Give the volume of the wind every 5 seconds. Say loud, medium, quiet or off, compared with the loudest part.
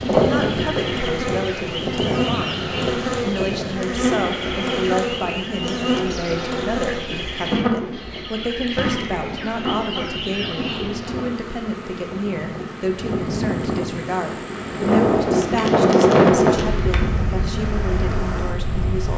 medium, quiet, medium, loud.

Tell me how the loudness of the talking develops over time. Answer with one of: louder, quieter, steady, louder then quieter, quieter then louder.
steady.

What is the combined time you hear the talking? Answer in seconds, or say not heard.
19 s.